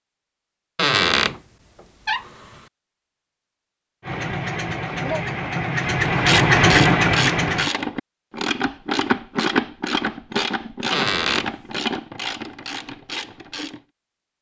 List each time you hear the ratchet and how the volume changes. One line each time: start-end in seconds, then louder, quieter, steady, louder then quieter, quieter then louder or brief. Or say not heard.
6.0-13.8 quieter.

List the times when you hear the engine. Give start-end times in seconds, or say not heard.
4.0-7.7.